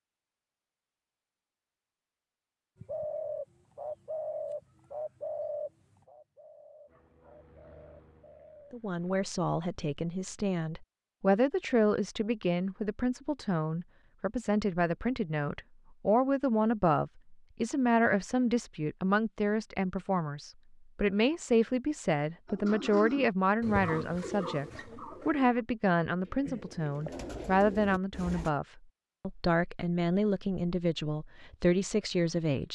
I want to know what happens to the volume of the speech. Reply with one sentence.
The volume of the speech stays about the same.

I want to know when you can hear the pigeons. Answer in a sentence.
The pigeons can be heard from 2.8 to 8.8 s and from 22.4 to 28.5 s.